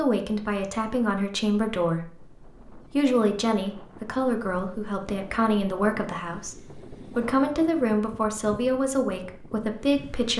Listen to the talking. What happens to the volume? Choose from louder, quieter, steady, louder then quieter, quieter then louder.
steady.